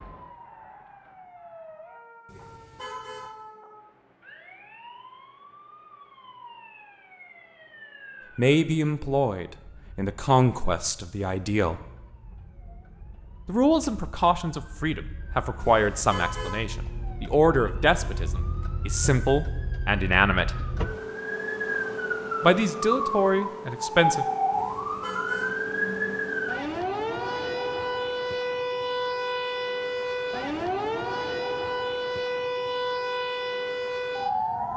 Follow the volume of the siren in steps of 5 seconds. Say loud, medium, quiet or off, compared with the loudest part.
quiet, quiet, quiet, medium, loud, loud, loud.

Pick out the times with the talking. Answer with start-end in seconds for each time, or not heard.
8.3-11.8, 13.4-20.6, 22.4-24.2.